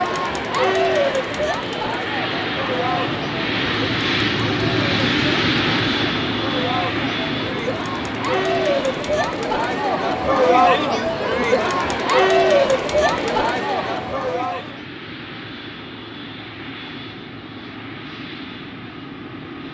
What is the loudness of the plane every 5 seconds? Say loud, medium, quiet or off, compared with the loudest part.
loud, loud, medium, medium.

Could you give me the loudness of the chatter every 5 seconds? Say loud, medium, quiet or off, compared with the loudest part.
medium, medium, loud, off.